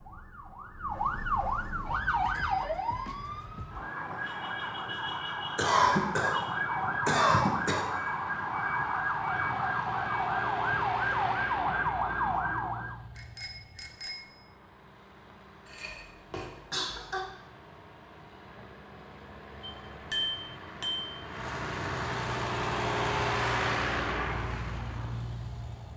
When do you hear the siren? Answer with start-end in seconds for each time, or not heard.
0.0-13.0.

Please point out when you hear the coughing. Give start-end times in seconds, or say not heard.
5.5-7.8, 15.7-17.2.